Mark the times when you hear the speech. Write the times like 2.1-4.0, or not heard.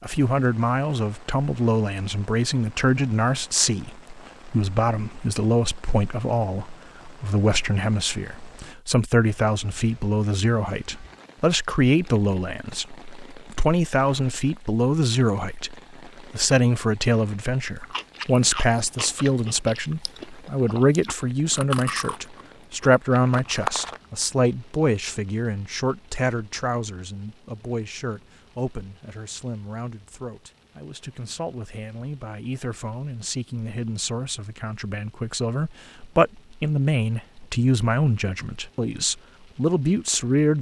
0.0-40.5.